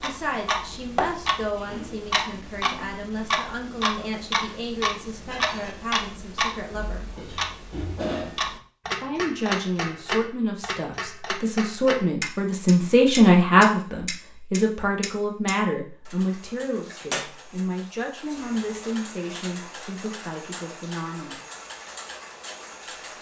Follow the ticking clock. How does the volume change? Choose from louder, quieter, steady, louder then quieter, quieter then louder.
quieter.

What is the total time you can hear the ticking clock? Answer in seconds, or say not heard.
23 s.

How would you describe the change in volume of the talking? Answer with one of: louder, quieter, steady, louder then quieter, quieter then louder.
louder then quieter.